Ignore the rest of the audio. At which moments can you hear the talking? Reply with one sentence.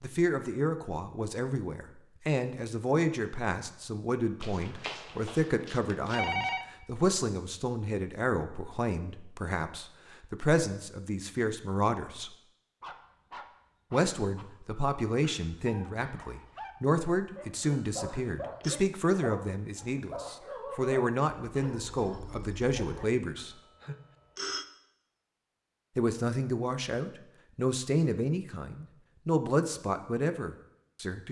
The talking can be heard from 0.0 to 12.3 s, from 13.9 to 23.6 s and from 25.9 to 31.2 s.